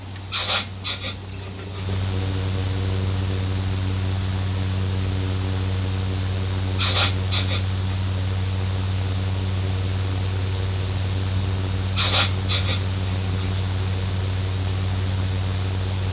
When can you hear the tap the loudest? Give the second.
1 s.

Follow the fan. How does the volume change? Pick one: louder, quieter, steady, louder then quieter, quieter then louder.
steady.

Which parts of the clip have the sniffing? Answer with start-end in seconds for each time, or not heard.
0.3-2.0, 6.8-8.1, 11.9-13.7.